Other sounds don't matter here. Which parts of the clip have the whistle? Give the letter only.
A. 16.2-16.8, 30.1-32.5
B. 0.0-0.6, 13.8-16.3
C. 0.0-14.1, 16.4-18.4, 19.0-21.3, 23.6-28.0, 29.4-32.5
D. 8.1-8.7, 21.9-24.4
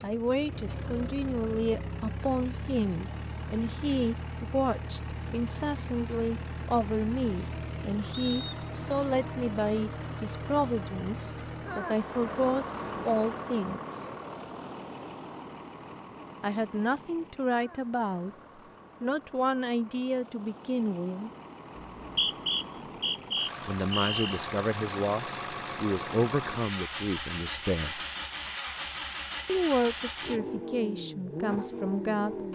D.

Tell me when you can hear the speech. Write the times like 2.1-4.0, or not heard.
0.0-14.1, 16.4-18.4, 19.0-21.3, 23.6-28.0, 29.4-32.5.